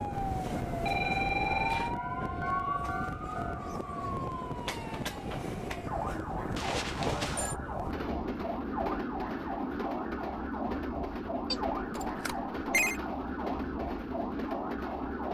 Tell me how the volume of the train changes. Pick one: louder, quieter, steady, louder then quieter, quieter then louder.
steady.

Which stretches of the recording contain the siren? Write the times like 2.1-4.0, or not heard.
0.0-15.3.